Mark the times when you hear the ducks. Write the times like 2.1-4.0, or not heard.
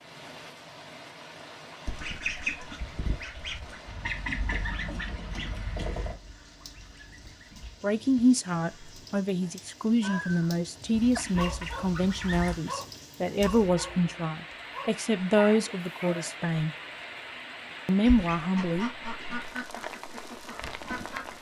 1.9-7.8, 10.9-12.6, 18.0-21.3.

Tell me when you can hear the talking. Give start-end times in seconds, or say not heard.
7.8-16.8, 17.9-19.4.